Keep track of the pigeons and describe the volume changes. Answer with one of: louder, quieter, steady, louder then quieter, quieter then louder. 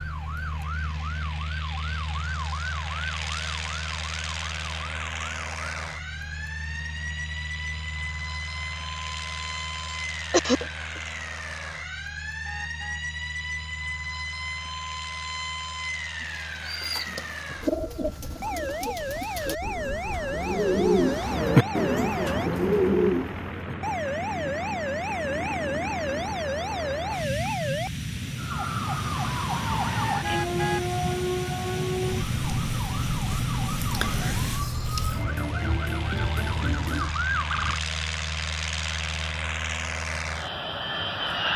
quieter then louder.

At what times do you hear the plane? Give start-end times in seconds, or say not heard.
0.0-41.5.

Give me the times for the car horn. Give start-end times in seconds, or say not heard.
12.4-13.0, 30.2-30.9.